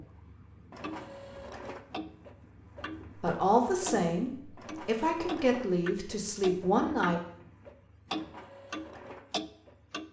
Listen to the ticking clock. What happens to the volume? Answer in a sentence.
The loudness of the ticking clock goes up.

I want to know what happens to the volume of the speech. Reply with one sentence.
The loudness of the speech goes down, then up.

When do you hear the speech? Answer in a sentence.
You can hear the speech from 3.1 to 7.2 s.